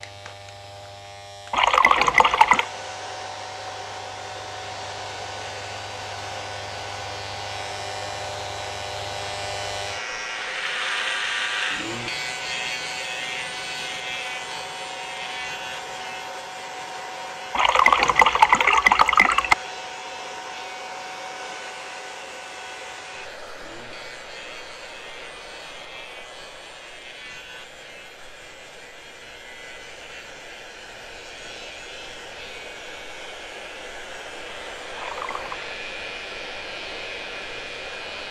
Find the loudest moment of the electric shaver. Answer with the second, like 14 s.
11 s.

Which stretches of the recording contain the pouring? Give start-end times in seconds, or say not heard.
1.5-2.6, 17.5-19.6, 35.0-35.6.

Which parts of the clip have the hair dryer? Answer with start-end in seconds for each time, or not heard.
0.0-38.2.